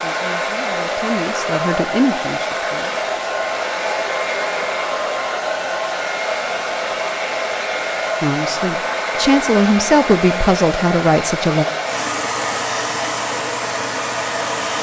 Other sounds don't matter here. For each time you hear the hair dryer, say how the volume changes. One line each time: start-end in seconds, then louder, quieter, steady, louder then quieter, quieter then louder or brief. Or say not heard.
0.0-14.7 steady.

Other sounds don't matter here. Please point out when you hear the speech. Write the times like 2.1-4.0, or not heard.
0.0-3.0, 8.2-11.7.